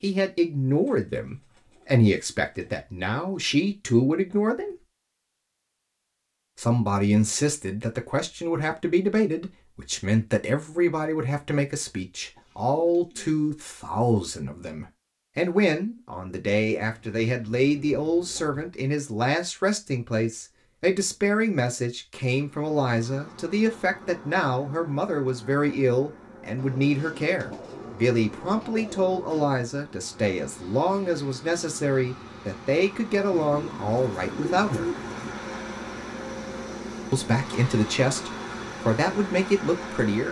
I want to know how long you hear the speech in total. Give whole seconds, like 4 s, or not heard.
36 s.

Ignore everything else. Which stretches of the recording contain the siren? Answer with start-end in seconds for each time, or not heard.
not heard.